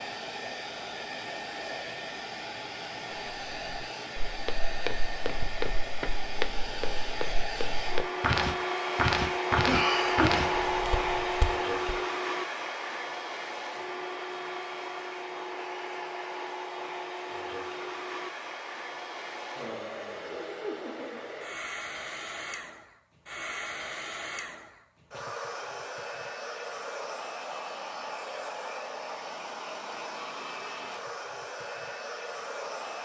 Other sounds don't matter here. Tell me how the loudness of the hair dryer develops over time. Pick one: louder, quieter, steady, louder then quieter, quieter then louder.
louder then quieter.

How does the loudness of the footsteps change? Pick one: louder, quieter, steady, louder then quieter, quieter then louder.
louder then quieter.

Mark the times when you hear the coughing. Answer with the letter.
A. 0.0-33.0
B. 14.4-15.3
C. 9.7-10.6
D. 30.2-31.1
C.